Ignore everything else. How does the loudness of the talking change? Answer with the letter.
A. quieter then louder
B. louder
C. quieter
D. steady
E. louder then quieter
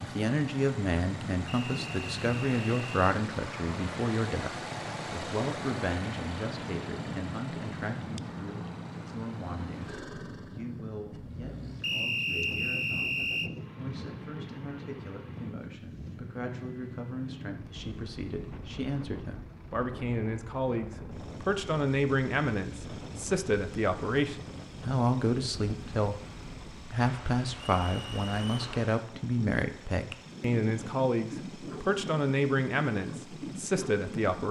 A.